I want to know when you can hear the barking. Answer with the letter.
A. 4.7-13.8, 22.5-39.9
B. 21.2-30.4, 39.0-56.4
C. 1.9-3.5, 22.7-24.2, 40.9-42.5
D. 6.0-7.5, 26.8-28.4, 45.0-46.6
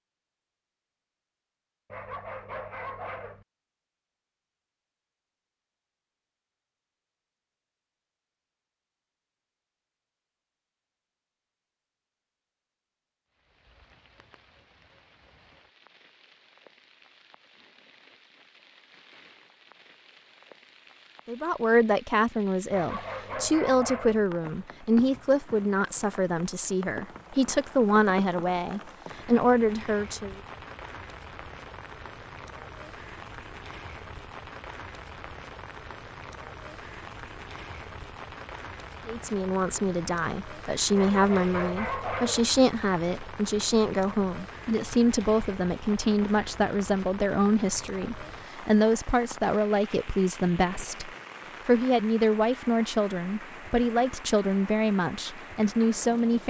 C.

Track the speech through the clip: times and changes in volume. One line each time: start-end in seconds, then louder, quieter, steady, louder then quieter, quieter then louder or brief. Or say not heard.
21.2-30.4 steady
39.0-56.4 steady.